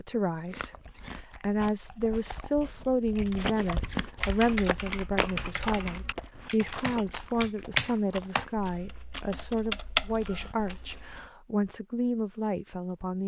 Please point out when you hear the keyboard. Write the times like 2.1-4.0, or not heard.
3.0-11.2.